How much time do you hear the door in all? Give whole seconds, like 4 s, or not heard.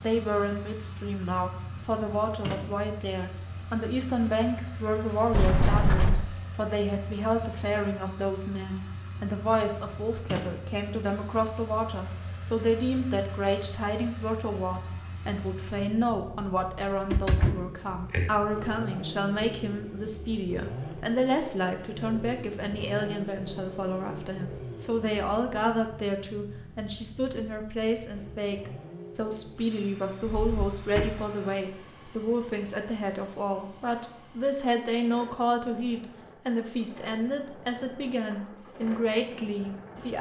3 s.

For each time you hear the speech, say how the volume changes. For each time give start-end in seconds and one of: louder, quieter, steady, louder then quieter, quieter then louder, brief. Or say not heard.
0.0-40.1 steady.